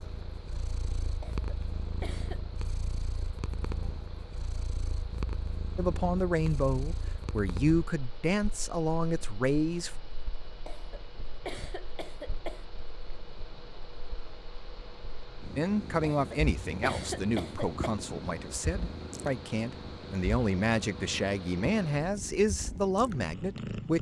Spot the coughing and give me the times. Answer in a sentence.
The coughing can be heard from 1.2 to 2.4 s, from 10.7 to 12.7 s and from 16.1 to 17.9 s.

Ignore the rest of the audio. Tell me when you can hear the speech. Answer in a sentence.
You can hear the speech from 5.8 to 9.9 s and from 15.6 to 23.9 s.